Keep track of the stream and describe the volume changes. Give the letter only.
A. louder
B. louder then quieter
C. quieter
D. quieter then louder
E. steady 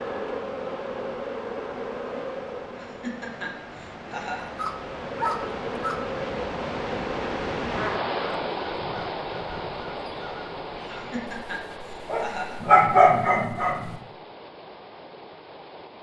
B.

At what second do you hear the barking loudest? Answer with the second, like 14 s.
13 s.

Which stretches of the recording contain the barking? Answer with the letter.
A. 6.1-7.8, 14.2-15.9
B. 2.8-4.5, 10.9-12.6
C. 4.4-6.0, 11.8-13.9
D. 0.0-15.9
C.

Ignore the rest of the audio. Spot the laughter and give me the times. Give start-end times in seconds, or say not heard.
2.8-4.5, 10.9-12.6.